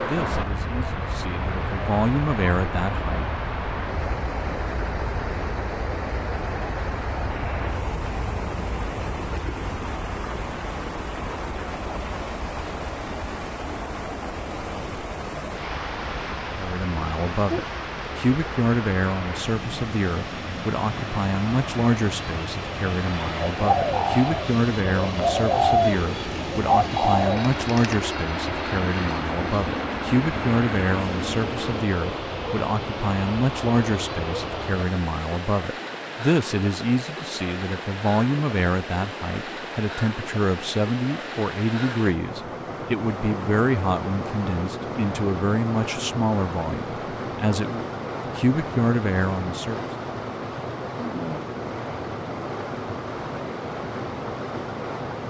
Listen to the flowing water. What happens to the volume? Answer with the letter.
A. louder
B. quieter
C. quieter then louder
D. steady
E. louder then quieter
D.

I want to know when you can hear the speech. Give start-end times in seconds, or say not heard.
0.0-3.2, 16.6-49.9.